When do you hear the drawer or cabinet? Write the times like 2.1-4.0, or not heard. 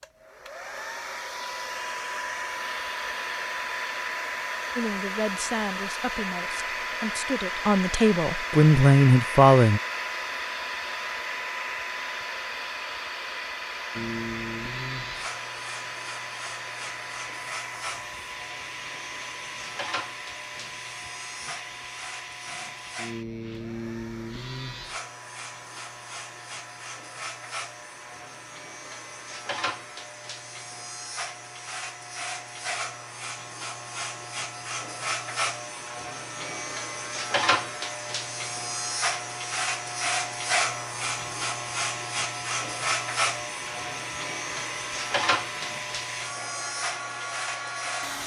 not heard.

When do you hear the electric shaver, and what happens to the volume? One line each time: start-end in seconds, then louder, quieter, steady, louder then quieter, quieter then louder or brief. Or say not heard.
13.9-48.2 louder.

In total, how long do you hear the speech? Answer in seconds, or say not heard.
5 s.